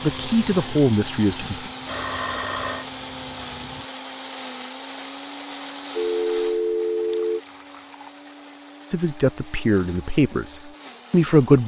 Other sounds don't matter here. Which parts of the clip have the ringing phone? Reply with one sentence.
You can hear the ringing phone from 1.9 to 2.9 s and from 6.0 to 7.4 s.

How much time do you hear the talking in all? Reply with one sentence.
You can hear the talking for 4 seconds altogether.